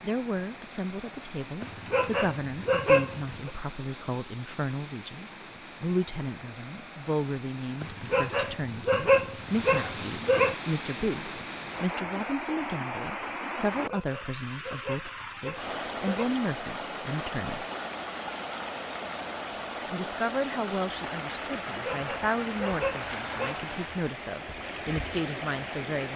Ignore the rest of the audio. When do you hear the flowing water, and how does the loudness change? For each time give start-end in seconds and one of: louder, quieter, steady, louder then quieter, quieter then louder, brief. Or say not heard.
0.0-26.1 louder.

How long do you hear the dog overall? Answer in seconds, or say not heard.
9 s.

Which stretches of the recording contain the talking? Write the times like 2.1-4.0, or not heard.
0.0-17.6, 19.9-26.1.